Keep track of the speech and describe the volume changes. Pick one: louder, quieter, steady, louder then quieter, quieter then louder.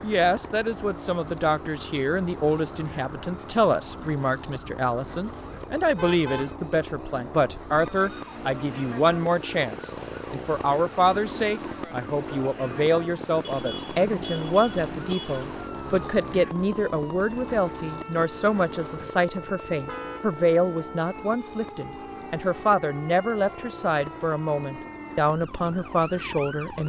steady.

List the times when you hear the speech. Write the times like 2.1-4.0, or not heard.
0.0-26.8.